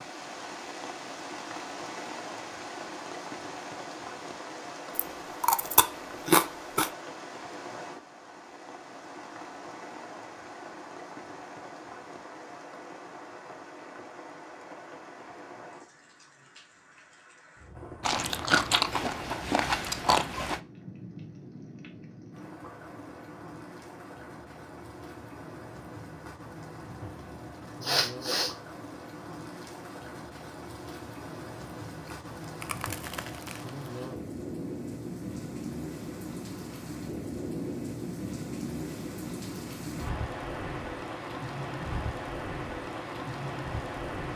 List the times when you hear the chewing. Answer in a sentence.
The chewing can be heard from 5.0 to 6.9 s, from 18.0 to 20.6 s and from 32.0 to 33.9 s.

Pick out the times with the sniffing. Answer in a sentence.
The sniffing can be heard from 27.8 to 28.6 s.